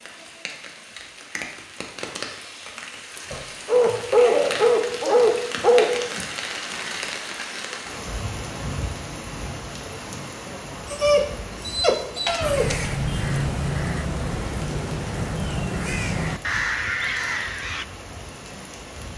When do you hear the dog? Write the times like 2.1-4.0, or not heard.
3.3-6.0, 10.9-12.8.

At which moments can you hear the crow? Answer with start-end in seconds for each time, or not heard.
12.4-17.9.